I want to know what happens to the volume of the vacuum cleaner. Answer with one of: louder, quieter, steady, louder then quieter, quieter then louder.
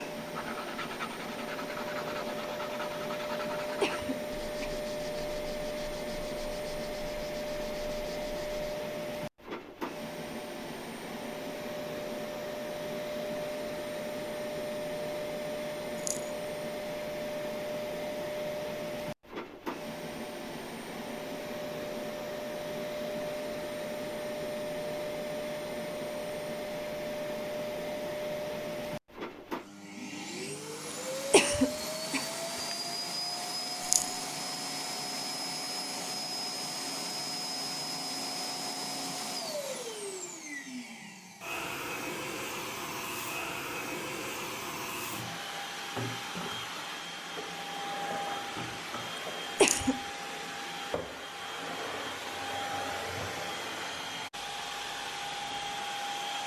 steady.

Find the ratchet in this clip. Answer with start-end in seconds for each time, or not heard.
not heard.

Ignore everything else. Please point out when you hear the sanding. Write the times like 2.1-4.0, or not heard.
0.1-8.7.